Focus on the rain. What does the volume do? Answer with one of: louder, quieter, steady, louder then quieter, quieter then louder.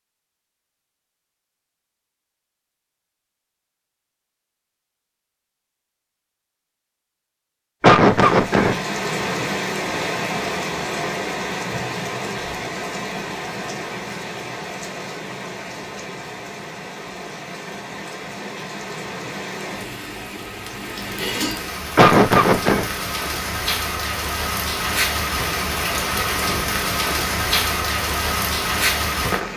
quieter then louder.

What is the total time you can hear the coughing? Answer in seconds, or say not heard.
2 s.